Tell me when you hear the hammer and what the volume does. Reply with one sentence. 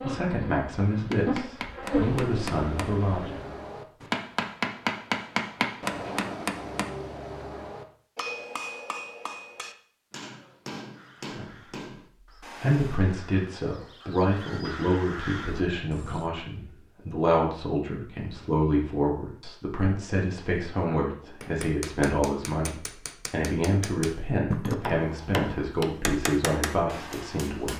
You can hear the hammer from 1.1 to 13.0 s, getting louder then quieter; and from 21.4 to 27.7 s, getting louder then quieter.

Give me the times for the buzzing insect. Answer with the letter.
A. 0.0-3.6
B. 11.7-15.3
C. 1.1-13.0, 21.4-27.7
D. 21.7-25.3
A.